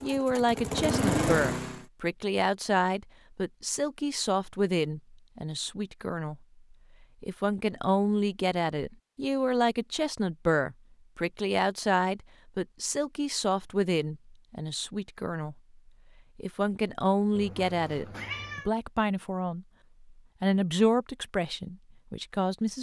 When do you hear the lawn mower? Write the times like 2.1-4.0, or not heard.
0.0-1.9.